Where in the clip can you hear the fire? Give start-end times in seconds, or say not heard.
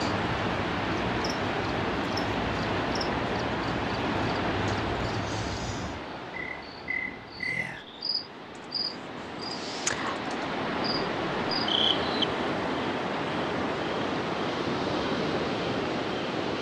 not heard.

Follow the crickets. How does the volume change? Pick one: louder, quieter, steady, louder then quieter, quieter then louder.
louder.